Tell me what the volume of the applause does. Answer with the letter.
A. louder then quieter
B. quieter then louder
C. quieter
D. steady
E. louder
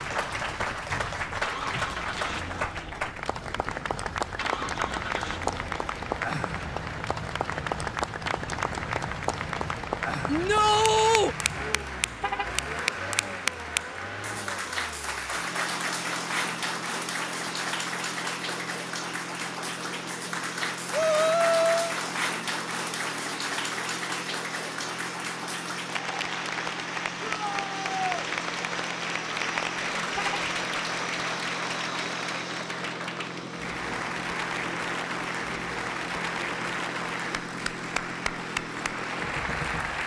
D.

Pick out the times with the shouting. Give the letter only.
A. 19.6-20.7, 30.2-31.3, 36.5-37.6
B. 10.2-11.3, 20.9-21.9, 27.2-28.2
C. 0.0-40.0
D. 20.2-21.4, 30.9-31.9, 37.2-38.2
B.